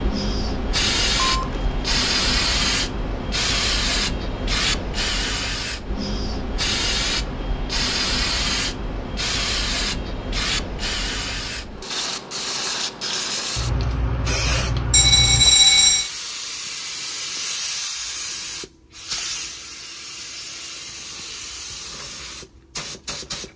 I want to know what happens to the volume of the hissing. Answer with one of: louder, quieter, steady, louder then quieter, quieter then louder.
quieter.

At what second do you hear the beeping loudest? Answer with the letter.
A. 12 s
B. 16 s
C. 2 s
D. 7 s
B.